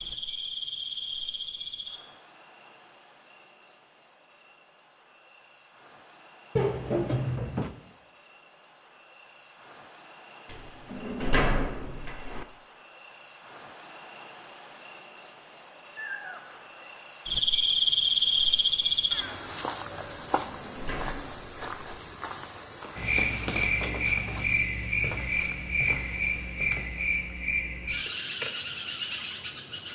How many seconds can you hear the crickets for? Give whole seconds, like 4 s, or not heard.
30 s.